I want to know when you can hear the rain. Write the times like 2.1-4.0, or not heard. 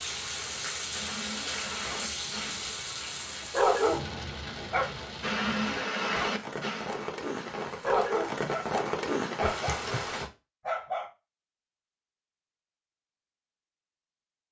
0.0-10.3.